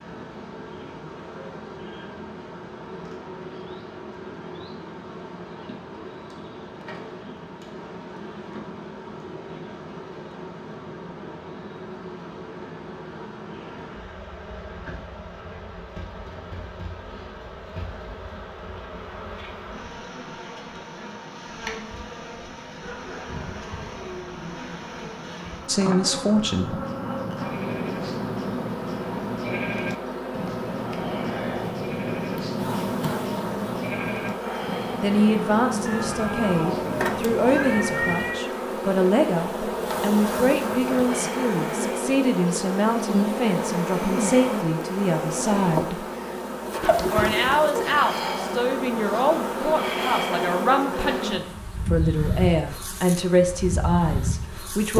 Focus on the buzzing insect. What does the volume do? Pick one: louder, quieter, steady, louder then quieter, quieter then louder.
louder.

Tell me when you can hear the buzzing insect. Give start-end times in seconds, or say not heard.
0.0-54.9.